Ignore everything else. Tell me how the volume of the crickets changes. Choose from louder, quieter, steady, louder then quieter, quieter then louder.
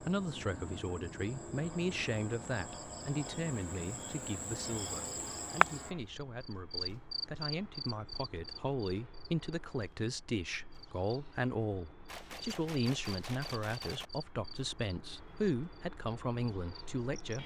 louder then quieter.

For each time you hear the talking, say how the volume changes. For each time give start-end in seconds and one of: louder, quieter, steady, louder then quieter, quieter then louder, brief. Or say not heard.
0.0-17.4 quieter then louder.